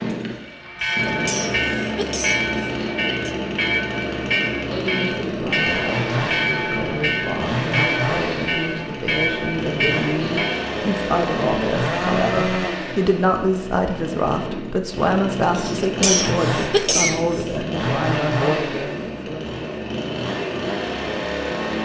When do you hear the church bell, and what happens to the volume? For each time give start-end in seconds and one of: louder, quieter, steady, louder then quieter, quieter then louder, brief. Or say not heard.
0.5-10.7 steady.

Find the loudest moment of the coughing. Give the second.
17 s.